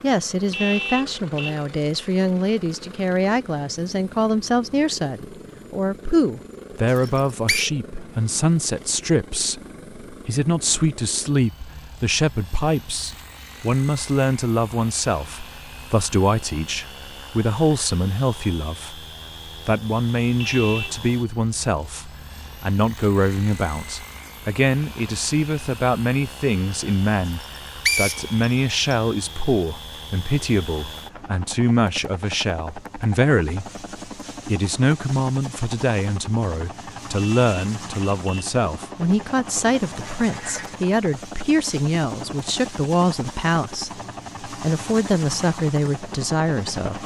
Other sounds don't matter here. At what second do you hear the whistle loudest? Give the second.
28 s.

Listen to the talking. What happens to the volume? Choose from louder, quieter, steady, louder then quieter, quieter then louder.
steady.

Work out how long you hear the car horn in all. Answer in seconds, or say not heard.
3 s.